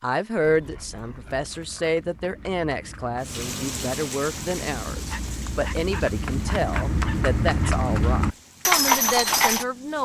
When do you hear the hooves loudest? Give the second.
9 s.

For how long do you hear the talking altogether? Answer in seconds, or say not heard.
10 s.